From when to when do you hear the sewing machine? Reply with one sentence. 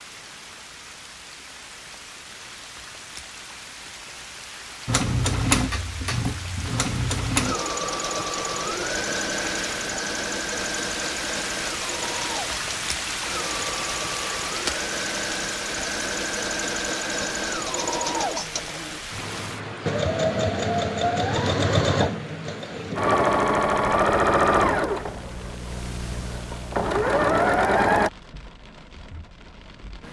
The sewing machine can be heard from 4.8 to 28.1 s.